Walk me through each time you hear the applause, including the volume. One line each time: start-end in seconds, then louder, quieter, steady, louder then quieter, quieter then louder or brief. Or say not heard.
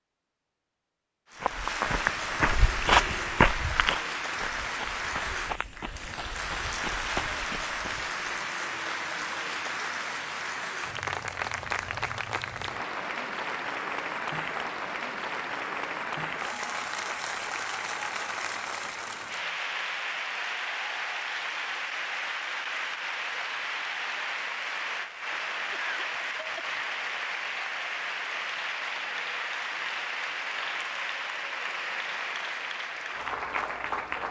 1.3-34.2 steady.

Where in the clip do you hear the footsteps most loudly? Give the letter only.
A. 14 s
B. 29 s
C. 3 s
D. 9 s
C.